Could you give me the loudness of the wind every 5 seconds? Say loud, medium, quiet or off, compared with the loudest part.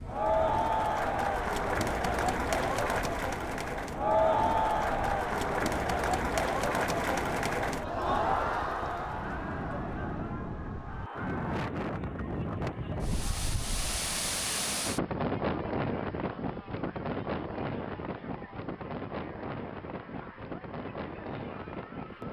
medium, medium, loud, loud, medium.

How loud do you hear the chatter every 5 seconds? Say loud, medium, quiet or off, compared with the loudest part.
loud, loud, quiet, quiet, quiet.